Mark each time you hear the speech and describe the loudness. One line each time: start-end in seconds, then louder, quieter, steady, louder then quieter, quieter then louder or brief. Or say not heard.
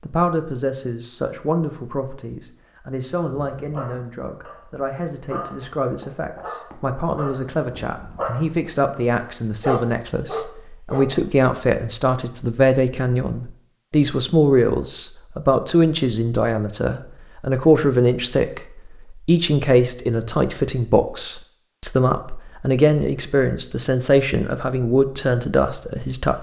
0.0-26.3 louder.